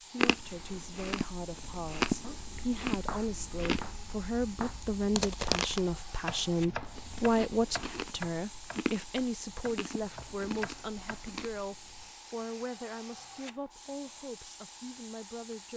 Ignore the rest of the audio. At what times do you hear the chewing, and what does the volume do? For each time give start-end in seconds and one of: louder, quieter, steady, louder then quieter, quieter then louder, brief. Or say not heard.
0.1-12.1 quieter.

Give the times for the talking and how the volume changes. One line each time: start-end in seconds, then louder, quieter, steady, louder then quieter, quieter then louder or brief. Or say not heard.
0.0-15.7 louder then quieter.